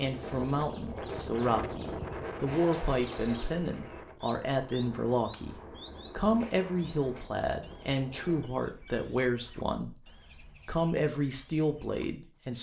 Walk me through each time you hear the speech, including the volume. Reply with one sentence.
You can hear the speech from 0.0 to 10.1 s, at a steady volume; and briefly from 10.7 to 12.5 s.